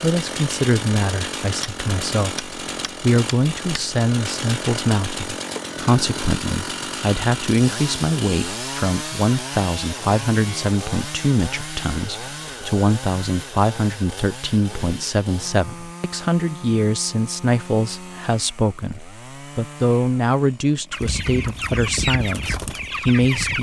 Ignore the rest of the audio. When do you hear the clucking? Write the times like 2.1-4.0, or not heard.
20.9-23.5.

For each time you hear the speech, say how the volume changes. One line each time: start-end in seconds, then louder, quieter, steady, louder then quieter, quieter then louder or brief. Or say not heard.
0.0-23.5 steady.